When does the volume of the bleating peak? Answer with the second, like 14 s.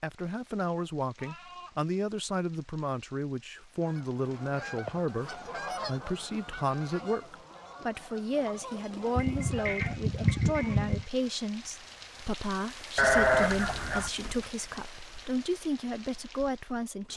13 s.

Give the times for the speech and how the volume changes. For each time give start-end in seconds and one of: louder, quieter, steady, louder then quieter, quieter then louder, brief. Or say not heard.
0.0-17.1 steady.